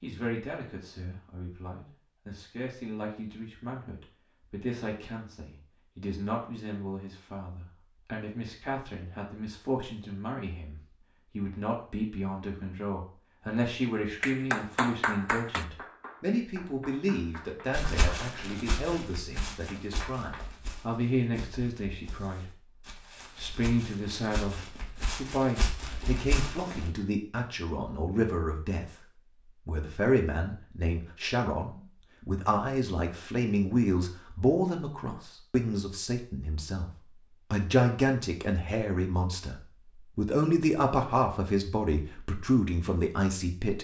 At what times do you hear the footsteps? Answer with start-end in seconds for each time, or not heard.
17.7-26.9.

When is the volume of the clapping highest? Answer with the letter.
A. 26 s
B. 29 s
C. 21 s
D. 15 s
D.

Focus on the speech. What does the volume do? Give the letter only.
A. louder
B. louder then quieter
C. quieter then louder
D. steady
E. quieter
A.